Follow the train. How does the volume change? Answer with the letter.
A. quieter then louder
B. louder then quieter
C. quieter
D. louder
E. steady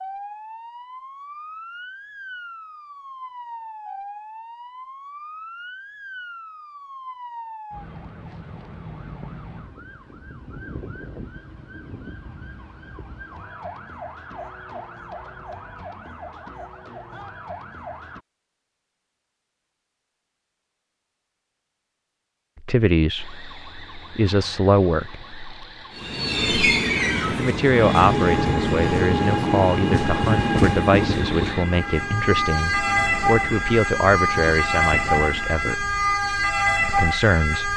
C.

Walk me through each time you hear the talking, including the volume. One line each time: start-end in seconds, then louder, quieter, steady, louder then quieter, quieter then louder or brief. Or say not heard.
22.6-25.2 brief
27.3-35.9 steady
36.9-37.7 brief.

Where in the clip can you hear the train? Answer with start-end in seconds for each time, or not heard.
25.9-36.0.